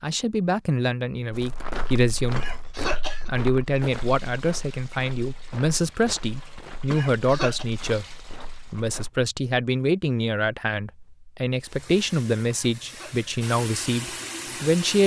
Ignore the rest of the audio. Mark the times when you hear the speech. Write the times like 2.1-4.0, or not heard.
0.0-15.0.